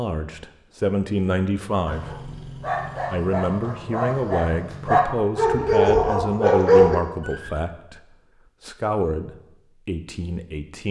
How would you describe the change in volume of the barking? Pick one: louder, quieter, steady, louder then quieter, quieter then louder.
louder.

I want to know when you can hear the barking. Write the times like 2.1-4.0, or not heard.
1.9-7.5.